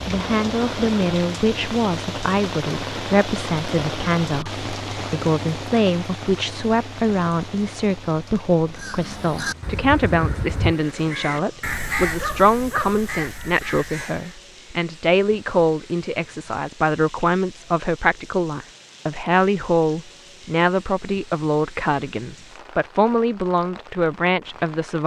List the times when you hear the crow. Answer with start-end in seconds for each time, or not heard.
8.8-14.3.